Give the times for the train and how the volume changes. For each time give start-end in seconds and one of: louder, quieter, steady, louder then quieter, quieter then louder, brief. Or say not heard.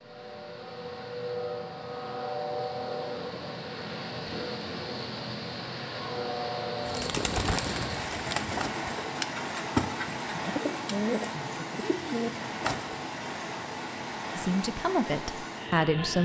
0.0-16.2 steady.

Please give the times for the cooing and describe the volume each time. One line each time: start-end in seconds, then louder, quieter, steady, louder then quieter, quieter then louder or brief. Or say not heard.
6.8-12.9 steady.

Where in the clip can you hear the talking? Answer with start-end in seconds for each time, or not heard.
14.3-16.2.